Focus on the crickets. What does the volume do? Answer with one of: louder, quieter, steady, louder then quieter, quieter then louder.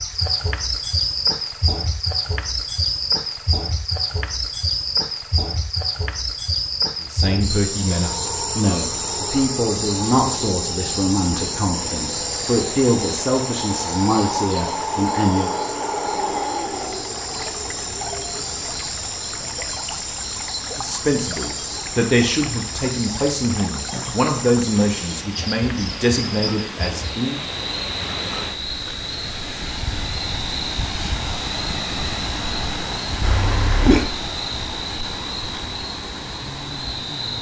quieter.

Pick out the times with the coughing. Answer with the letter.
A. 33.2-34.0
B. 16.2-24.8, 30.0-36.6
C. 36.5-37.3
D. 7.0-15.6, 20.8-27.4
A.